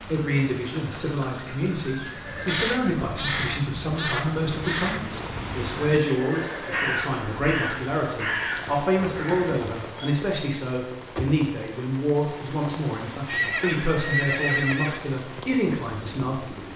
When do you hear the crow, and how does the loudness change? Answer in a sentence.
The crow can be heard from 2.2 to 10.2 s, at a steady volume.